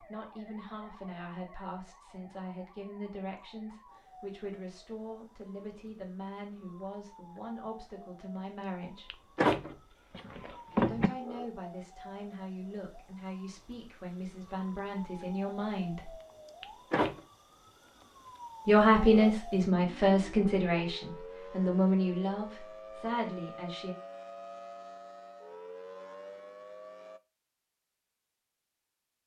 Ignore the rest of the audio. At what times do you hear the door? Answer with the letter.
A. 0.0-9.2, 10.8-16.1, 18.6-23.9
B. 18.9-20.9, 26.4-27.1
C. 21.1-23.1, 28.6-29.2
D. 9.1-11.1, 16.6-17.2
D.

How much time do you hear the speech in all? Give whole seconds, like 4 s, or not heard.
20 s.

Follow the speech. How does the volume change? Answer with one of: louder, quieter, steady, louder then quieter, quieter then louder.
louder.